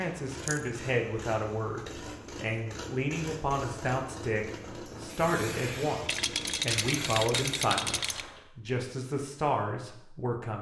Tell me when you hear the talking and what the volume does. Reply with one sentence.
You can hear the talking from 0.0 to 10.5 s, at a steady volume.